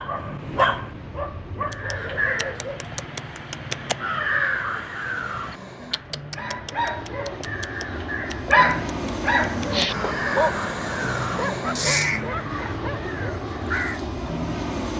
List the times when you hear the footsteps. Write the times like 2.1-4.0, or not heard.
not heard.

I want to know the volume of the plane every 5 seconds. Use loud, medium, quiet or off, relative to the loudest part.
quiet, loud, loud.